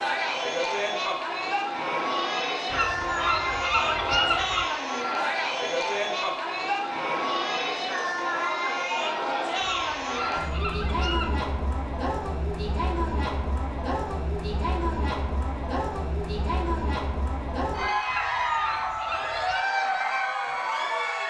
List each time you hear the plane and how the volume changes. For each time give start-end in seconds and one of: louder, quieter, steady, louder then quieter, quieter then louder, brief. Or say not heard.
not heard.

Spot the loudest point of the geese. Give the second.
4 s.